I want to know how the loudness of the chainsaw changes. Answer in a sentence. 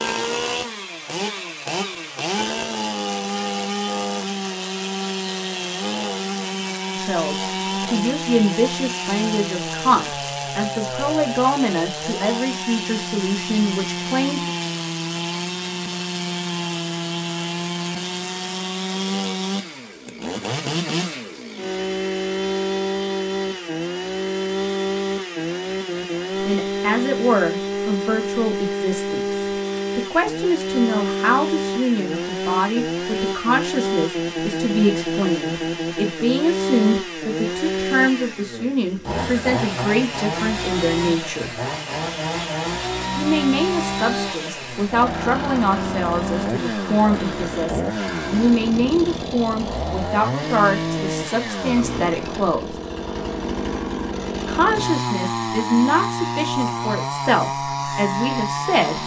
The loudness of the chainsaw stays about the same.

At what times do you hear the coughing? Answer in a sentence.
You can't hear the coughing here.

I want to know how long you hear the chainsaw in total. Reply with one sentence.
You can hear the chainsaw for 59 seconds altogether.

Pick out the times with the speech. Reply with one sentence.
You can hear the speech from 6.9 to 14.5 s, from 26.4 to 41.5 s, from 43.1 to 52.8 s and from 54.5 to 59.0 s.